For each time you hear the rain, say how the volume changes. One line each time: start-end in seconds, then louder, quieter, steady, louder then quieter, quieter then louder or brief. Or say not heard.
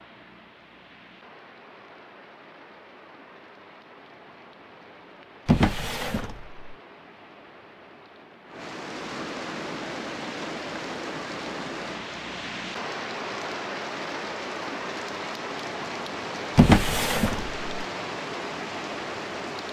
0.0-19.6 louder.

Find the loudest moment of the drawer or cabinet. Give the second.
17 s.